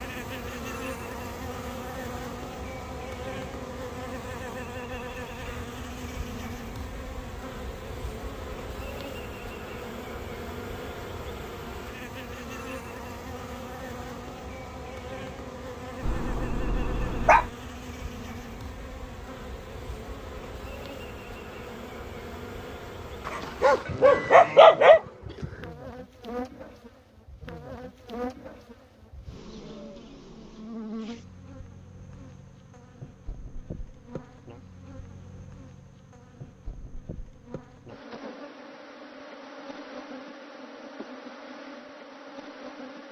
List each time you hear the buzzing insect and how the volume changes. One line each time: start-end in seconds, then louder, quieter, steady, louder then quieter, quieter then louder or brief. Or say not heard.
0.0-43.0 quieter.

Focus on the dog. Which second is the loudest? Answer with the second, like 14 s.
25 s.